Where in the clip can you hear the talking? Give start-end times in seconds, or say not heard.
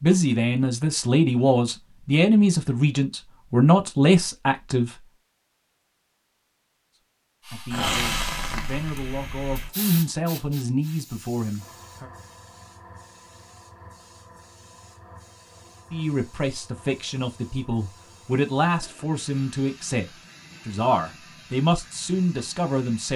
0.0-4.9, 7.5-12.1, 15.9-23.1.